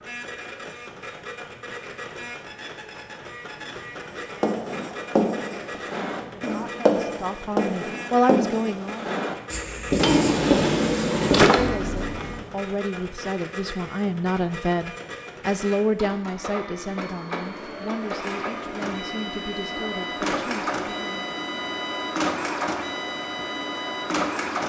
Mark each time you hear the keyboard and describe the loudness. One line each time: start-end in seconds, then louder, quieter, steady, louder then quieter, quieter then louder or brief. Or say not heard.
not heard.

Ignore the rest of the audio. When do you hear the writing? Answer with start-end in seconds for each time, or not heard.
4.1-12.4.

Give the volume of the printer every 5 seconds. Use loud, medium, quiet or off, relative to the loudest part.
medium, medium, medium, medium, loud.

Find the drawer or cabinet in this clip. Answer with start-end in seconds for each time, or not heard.
9.9-11.8.